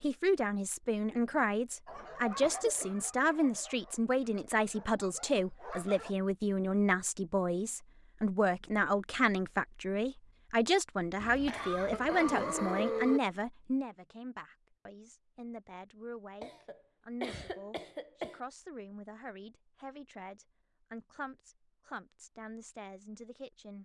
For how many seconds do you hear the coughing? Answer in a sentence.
You can hear the coughing for 5 seconds altogether.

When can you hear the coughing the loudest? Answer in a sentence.
The loudest moment of the coughing is at 13 seconds.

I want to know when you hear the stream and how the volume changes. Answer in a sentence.
You can't hear the stream here.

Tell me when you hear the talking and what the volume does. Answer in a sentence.
You can hear the talking from 0.0 to 23.8 s, getting quieter.